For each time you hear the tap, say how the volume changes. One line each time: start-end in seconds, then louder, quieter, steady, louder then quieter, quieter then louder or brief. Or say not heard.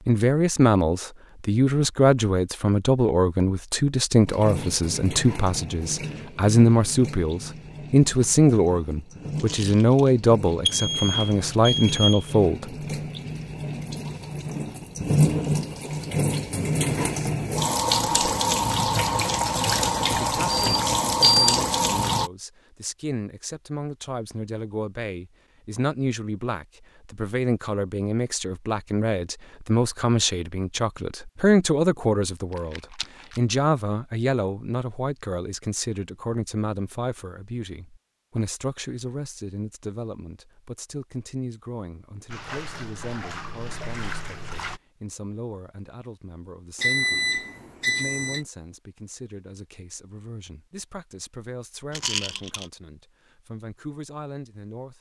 4.2-22.3 louder
42.3-44.8 brief.